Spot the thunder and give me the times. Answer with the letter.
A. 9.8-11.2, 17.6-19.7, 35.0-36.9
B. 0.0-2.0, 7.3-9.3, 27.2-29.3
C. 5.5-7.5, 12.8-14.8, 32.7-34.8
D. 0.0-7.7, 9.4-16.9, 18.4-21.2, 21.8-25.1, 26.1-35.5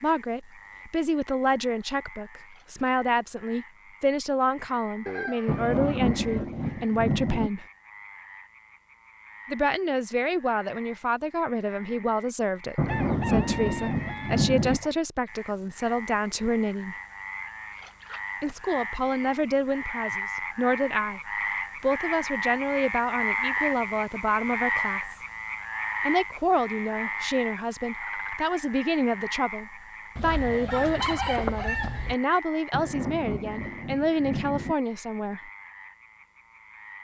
C.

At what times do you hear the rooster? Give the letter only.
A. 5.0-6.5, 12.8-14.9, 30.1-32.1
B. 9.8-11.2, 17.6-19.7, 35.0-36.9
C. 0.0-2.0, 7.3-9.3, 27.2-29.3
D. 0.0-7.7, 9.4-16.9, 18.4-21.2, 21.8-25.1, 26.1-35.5
A.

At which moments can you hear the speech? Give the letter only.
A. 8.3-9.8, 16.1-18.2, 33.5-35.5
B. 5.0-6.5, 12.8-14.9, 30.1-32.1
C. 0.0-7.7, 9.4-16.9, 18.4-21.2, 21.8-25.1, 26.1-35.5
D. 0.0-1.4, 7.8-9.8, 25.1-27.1
C.